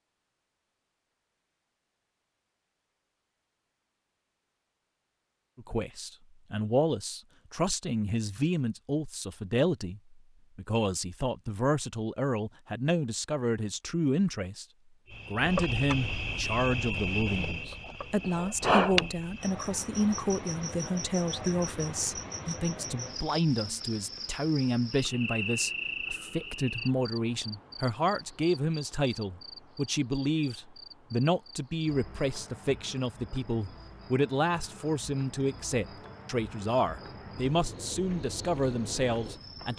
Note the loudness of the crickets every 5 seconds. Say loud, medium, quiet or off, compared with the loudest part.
off, off, off, loud, medium, medium, quiet, quiet.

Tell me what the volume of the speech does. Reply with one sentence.
The volume of the speech stays about the same.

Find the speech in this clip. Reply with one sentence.
The speech can be heard from 5.5 to 14.7 s and from 15.2 to 39.7 s.